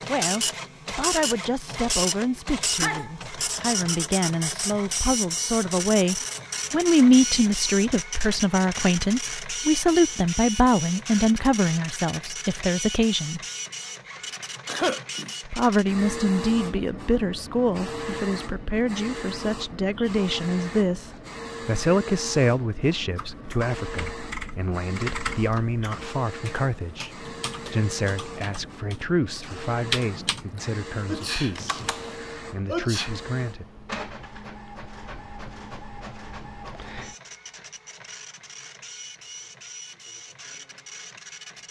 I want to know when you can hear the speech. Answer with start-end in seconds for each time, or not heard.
0.1-13.4, 15.4-33.6.